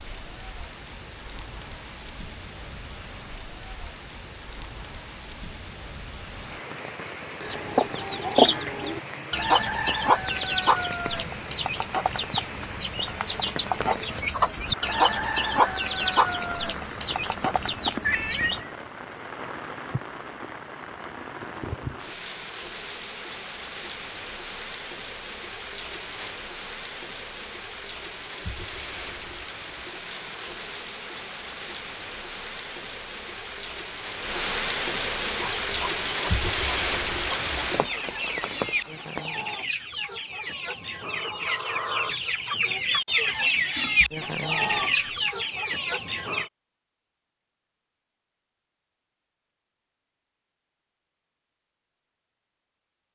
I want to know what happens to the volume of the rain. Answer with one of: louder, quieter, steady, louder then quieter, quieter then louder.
louder.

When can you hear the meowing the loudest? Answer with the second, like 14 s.
18 s.